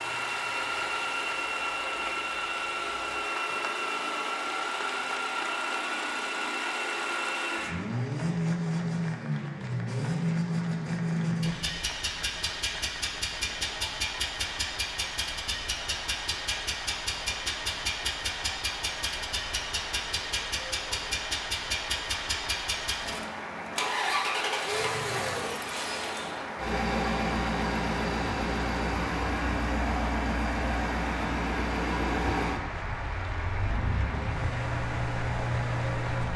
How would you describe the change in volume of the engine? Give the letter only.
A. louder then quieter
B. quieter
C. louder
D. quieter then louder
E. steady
E.